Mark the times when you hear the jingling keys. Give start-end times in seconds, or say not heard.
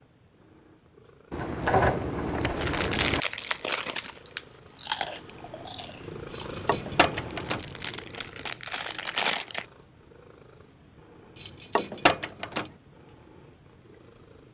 1.3-3.2, 6.3-7.7, 11.3-12.7.